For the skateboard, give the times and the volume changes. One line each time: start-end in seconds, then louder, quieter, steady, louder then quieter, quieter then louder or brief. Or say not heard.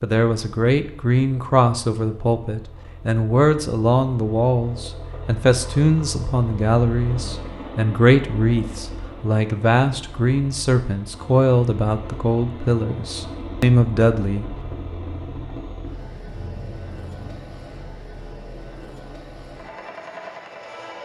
not heard.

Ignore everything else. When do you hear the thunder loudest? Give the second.
17 s.